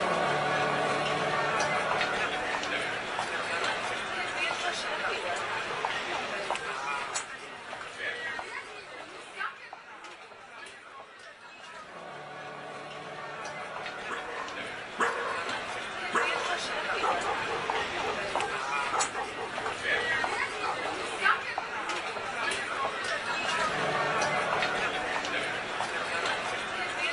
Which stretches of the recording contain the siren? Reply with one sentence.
You can't hear the siren here.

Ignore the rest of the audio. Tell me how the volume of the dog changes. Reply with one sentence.
The volume of the dog goes down.